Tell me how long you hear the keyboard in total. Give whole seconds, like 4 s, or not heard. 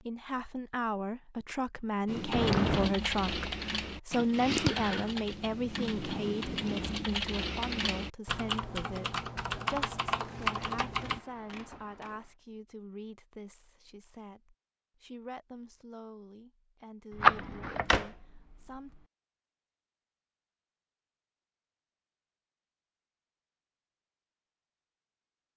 9 s.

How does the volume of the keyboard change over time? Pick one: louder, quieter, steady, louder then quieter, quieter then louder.
steady.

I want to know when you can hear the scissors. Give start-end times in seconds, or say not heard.
2.3-2.9, 10.2-12.3, 17.2-17.9.